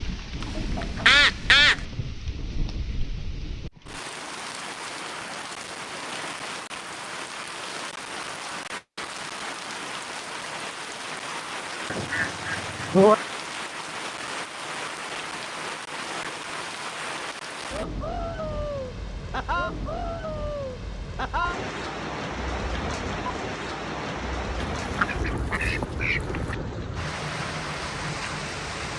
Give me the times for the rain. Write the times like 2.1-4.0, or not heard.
0.0-28.9.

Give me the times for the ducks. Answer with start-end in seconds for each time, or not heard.
0.4-1.8, 11.9-13.2, 24.6-26.6.